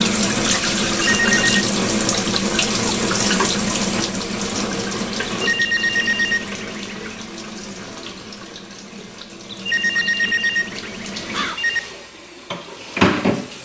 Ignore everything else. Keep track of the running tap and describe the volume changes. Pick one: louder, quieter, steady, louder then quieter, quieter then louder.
quieter then louder.